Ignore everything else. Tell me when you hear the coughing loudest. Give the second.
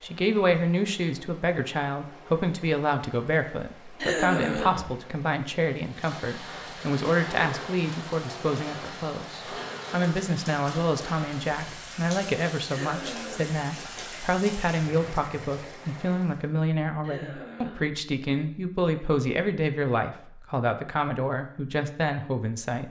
4 s.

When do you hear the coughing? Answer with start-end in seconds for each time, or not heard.
4.0-4.9, 12.7-13.6, 17.0-17.9.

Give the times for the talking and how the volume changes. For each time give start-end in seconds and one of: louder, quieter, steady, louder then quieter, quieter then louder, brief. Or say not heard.
0.0-22.8 steady.